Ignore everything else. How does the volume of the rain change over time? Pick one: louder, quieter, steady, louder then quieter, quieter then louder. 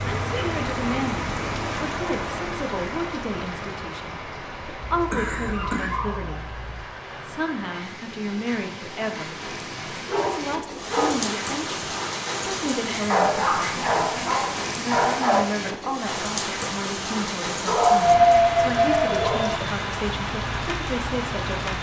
quieter then louder.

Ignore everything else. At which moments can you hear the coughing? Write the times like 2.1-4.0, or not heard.
5.1-5.9.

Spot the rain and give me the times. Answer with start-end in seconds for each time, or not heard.
0.0-21.7.